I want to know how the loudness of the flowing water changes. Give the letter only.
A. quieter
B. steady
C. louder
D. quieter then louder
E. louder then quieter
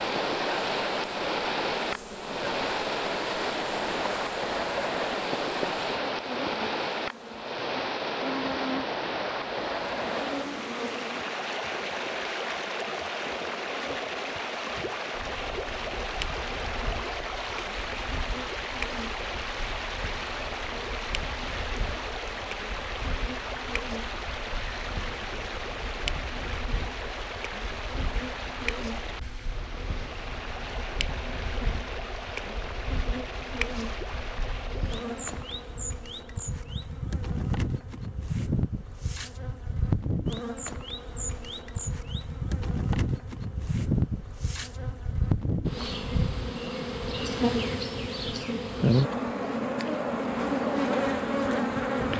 A.